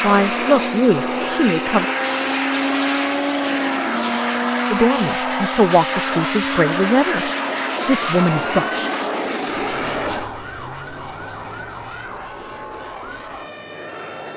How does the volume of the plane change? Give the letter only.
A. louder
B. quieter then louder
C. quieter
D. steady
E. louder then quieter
C.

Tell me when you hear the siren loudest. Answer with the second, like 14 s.
3 s.